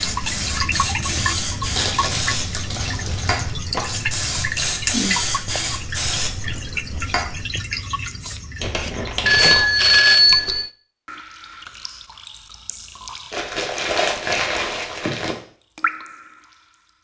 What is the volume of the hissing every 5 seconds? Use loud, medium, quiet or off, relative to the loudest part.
loud, loud, off, off.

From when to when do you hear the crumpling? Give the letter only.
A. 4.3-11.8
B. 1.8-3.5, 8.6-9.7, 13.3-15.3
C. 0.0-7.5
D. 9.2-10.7
B.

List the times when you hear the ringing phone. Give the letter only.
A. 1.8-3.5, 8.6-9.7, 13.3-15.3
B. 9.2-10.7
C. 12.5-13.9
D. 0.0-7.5
B.